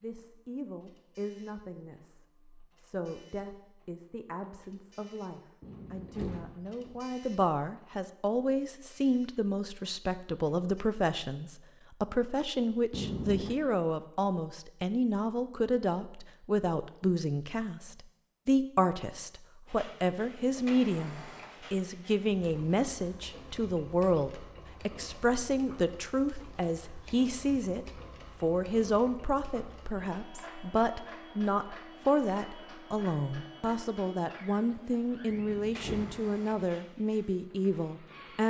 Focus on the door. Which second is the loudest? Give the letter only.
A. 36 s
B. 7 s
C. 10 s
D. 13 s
D.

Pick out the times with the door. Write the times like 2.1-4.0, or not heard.
5.6-7.0, 12.9-13.6, 35.2-36.6.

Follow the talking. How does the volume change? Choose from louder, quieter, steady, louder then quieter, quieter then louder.
louder.